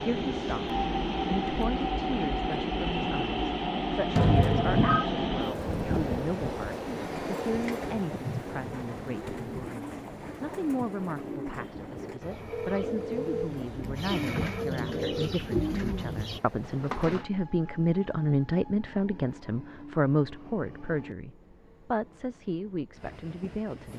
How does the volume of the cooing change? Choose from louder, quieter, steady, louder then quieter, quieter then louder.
louder.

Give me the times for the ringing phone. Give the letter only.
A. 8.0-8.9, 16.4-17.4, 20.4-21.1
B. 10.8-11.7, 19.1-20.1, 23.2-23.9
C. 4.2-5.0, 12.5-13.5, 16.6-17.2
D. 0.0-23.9
C.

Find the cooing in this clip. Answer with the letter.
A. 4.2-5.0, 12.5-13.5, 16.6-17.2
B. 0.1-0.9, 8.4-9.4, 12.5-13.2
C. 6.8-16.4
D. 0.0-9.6
C.